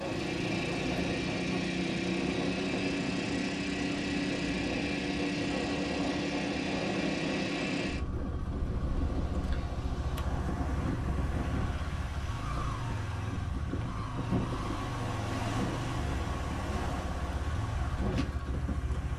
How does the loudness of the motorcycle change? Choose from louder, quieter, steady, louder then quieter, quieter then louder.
quieter.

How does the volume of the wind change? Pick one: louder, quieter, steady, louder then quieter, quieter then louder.
steady.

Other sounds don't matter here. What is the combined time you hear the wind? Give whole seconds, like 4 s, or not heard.
19 s.